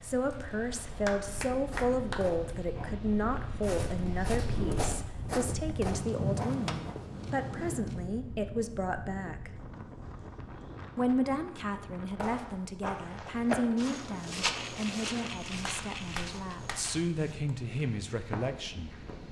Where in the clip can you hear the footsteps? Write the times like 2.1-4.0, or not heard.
1.7-7.1, 12.8-19.2.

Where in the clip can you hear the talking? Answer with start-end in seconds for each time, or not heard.
0.0-9.5, 10.9-18.9.